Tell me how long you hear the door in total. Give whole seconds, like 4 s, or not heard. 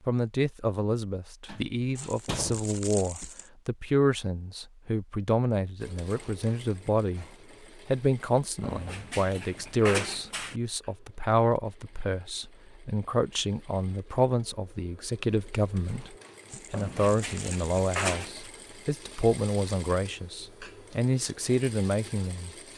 5 s.